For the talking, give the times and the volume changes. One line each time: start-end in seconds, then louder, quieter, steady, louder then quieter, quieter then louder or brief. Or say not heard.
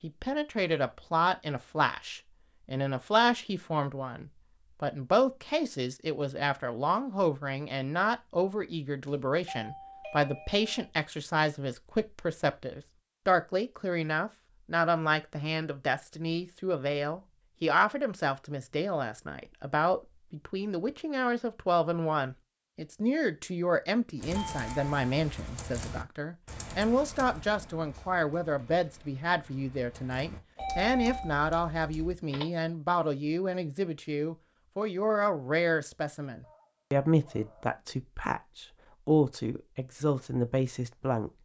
0.0-41.3 steady.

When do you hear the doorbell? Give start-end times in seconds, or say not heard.
9.1-10.8, 24.4-25.1, 30.6-31.4.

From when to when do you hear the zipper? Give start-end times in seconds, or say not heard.
not heard.